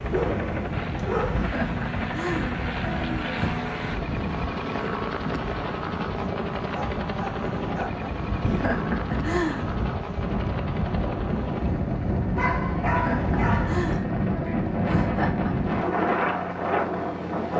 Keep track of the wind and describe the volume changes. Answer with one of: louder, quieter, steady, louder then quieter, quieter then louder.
louder.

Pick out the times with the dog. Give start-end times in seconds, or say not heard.
0.1-1.6, 6.6-8.1, 12.3-13.8.